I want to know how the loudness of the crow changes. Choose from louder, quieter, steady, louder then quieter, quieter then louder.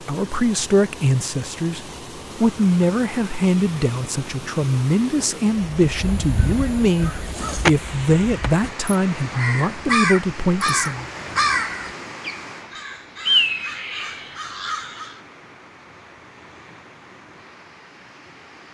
quieter then louder.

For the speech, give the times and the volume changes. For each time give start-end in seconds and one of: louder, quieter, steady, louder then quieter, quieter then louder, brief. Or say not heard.
0.1-11.1 steady.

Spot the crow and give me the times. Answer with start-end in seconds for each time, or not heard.
5.8-15.2.